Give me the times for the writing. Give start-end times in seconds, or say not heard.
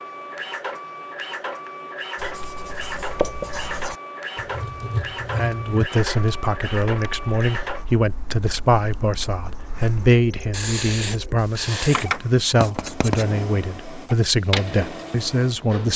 2.1-13.2.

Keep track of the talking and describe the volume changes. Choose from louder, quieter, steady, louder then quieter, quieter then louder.
steady.